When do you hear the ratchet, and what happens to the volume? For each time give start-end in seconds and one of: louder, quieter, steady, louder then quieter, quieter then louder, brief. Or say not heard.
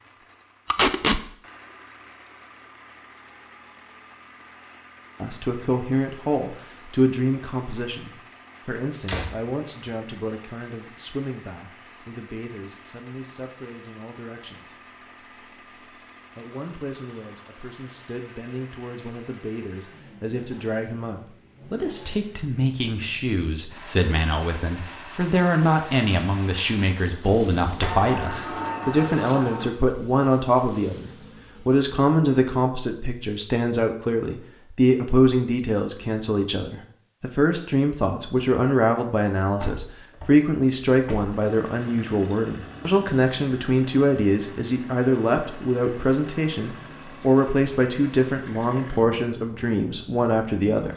not heard.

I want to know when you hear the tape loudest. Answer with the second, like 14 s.
1 s.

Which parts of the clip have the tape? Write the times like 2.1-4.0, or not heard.
0.7-1.2, 28.4-29.4.